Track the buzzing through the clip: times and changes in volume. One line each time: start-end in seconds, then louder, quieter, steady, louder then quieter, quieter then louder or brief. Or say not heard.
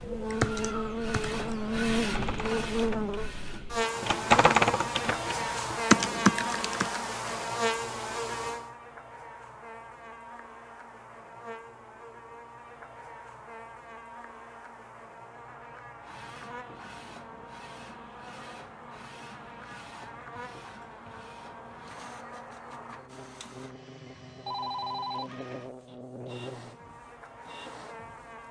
0.0-28.4 quieter.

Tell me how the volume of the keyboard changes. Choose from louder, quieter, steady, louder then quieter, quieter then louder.
quieter then louder.